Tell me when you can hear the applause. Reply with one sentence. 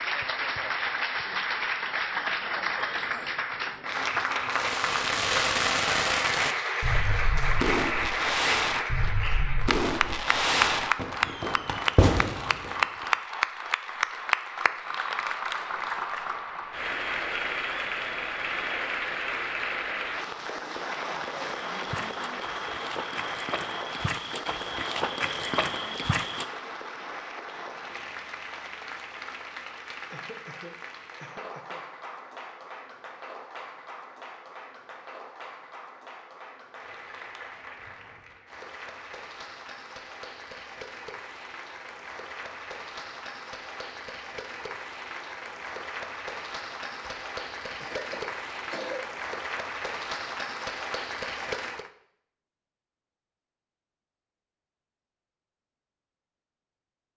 The applause can be heard from 0.0 to 51.9 s.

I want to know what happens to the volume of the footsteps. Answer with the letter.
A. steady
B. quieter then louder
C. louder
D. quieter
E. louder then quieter
C.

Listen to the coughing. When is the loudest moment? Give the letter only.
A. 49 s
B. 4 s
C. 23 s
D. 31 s
A.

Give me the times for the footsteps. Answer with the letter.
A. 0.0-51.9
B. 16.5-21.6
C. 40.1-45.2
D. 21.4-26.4
D.